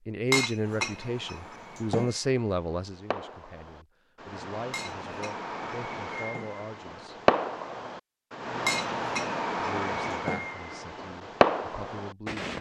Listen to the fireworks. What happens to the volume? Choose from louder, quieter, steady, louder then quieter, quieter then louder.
louder.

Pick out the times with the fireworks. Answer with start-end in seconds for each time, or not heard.
0.6-12.5.